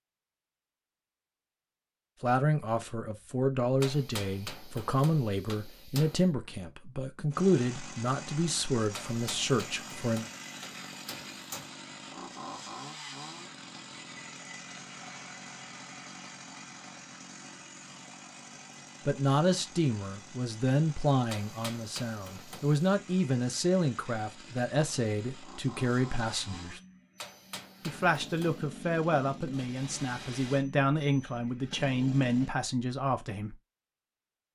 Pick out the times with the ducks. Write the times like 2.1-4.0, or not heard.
not heard.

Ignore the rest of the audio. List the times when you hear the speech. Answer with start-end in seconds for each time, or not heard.
2.2-10.2, 19.1-26.8, 27.9-33.5.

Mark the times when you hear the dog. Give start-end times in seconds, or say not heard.
not heard.